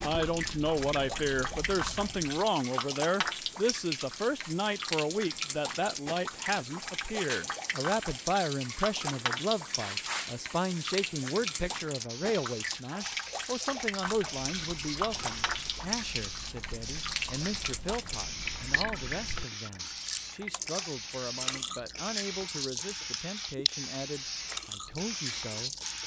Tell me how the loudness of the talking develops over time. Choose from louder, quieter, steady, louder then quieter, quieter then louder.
quieter.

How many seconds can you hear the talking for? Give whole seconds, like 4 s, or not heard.
26 s.